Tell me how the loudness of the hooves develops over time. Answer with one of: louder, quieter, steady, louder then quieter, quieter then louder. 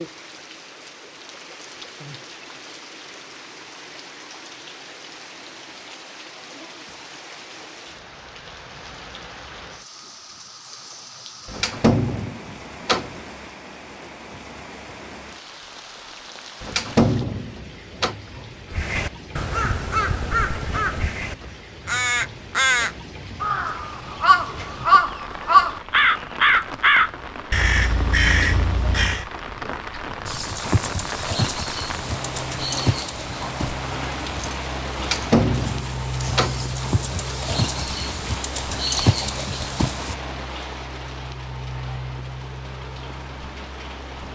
quieter then louder.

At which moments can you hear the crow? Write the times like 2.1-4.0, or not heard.
18.7-29.2.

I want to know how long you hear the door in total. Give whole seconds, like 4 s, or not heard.
5 s.